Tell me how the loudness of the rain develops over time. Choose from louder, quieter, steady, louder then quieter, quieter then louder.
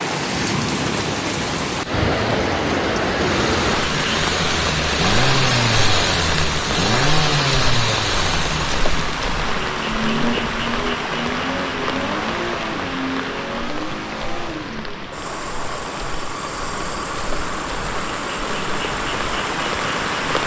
quieter.